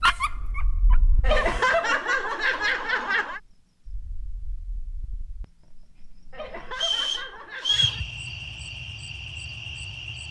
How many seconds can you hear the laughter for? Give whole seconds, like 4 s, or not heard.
4 s.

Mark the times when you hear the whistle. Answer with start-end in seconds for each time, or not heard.
6.7-8.1.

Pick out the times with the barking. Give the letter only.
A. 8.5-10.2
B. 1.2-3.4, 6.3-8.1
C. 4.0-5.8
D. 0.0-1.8
D.